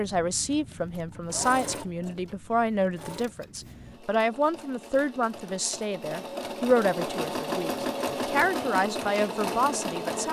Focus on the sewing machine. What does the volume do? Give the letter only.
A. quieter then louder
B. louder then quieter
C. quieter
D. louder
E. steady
A.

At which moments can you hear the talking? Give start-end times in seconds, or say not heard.
0.0-10.2.